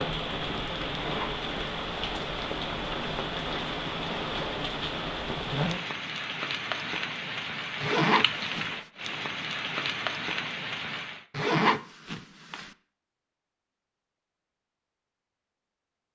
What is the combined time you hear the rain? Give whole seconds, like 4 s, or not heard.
11 s.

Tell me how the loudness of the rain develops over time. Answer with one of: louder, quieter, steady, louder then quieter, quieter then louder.
steady.